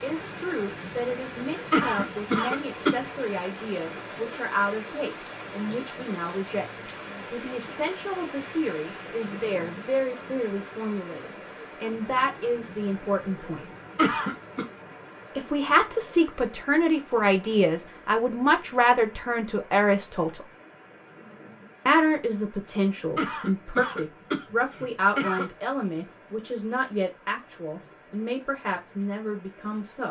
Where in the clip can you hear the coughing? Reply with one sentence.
You can hear the coughing from 1.7 to 3.0 s, from 13.9 to 14.7 s and from 23.1 to 25.5 s.